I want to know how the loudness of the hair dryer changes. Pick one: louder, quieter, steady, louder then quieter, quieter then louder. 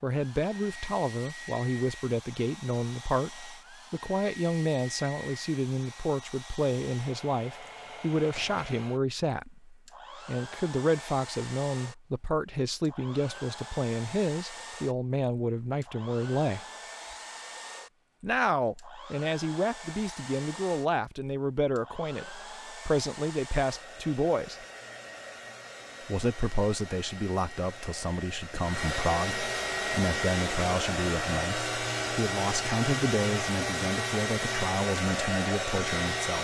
louder.